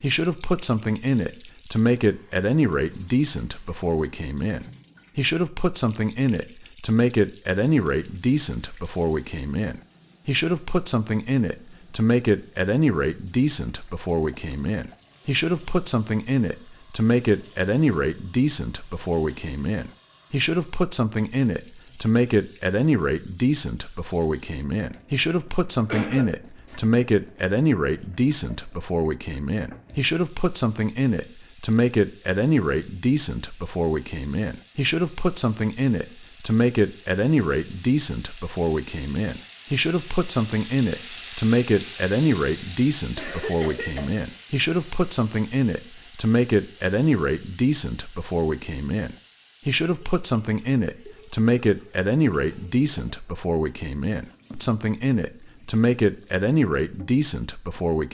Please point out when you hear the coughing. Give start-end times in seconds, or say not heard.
25.9-26.8, 43.1-44.1.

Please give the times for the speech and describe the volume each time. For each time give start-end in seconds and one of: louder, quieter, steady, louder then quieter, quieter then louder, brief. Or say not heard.
0.0-58.0 steady.